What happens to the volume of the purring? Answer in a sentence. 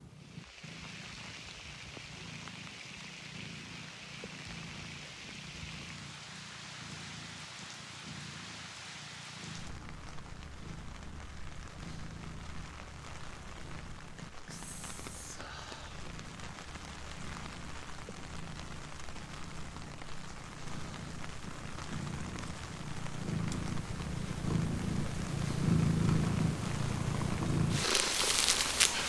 The volume of the purring goes up.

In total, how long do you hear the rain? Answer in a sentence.
You can hear the rain for 29 seconds altogether.